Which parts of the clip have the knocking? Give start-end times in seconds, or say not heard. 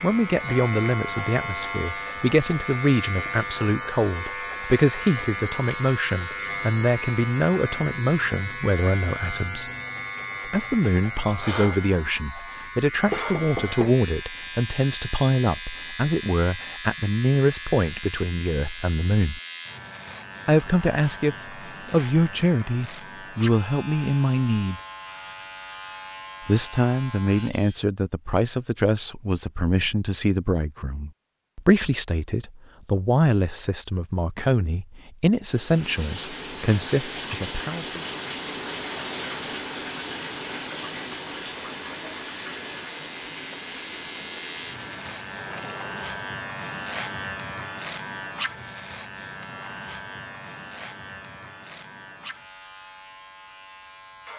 13.1-14.0.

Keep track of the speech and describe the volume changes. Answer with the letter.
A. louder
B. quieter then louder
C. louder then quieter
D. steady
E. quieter
D.